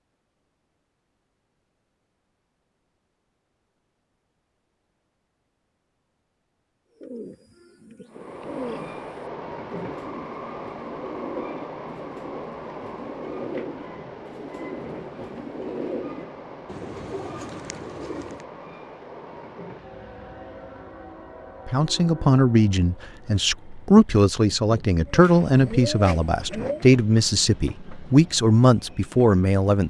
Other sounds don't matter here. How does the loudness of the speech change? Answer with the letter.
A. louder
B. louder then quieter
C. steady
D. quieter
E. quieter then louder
C.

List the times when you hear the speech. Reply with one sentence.
The speech can be heard from 21.6 to 29.8 s.